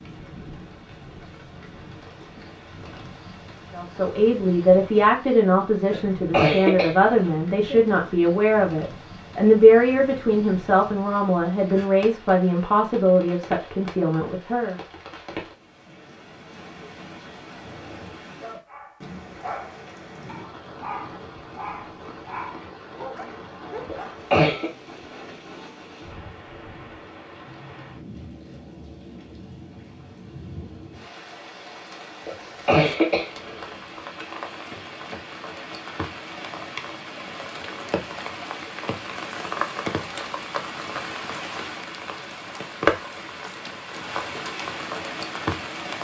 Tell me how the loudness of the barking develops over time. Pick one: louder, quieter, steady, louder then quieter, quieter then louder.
louder.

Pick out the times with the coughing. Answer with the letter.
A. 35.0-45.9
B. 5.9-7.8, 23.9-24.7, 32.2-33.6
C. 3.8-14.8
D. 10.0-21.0
B.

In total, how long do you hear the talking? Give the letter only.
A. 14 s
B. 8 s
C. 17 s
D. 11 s
D.